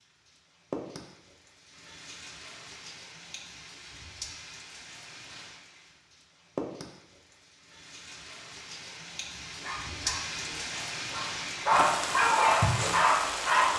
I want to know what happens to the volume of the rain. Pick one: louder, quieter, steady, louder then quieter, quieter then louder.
louder.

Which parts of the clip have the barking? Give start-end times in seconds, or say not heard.
9.4-13.7.